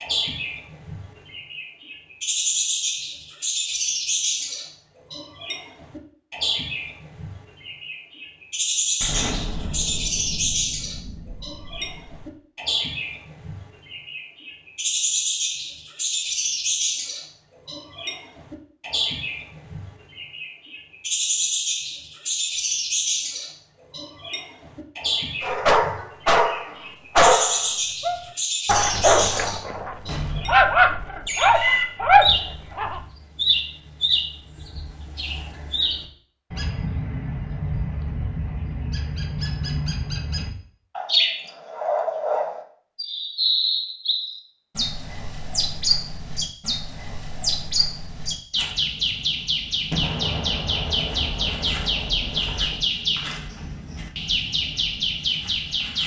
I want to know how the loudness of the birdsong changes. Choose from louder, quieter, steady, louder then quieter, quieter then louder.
steady.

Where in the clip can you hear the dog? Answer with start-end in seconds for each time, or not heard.
25.4-33.0.